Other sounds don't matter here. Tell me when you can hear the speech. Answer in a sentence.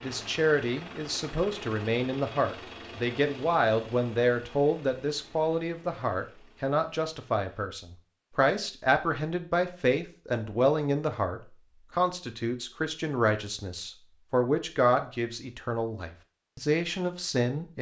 The speech can be heard from 0.0 to 17.7 s.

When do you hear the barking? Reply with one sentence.
You can't hear the barking here.